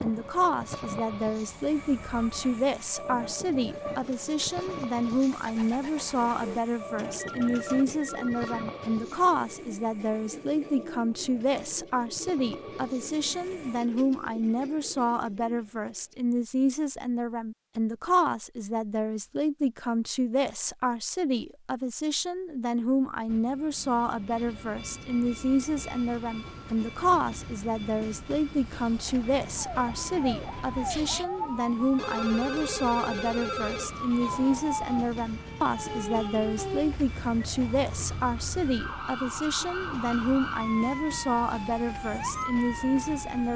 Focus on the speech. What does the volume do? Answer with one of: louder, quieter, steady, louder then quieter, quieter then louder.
steady.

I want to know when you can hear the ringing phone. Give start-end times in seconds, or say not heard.
7.2-8.7, 31.9-34.0.